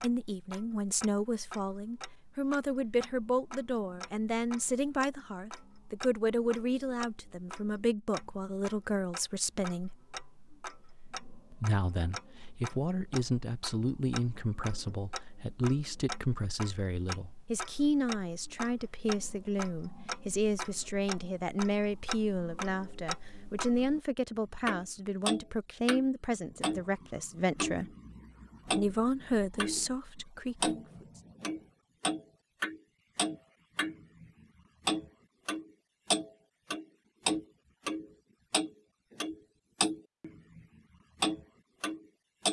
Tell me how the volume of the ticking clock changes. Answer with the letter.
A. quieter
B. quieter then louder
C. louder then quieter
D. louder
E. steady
D.